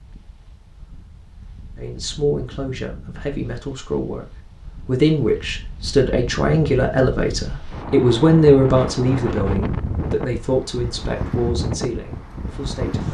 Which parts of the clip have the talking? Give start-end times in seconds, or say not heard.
1.8-4.2, 4.8-13.0.